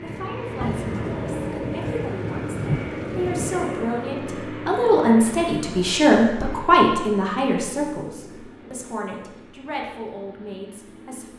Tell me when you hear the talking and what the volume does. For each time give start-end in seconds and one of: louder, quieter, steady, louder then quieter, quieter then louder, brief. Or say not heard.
0.0-11.3 louder then quieter.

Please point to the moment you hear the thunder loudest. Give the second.
3 s.